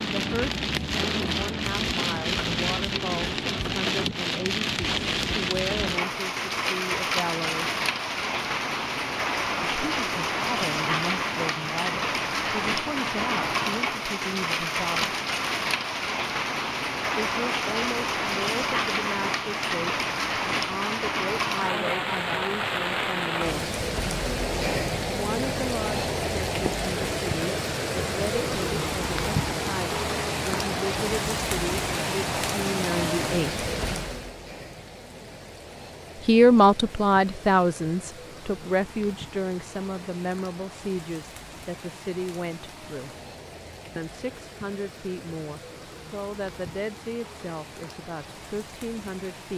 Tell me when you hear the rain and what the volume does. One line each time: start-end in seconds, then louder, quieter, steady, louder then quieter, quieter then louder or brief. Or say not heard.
0.0-49.5 quieter.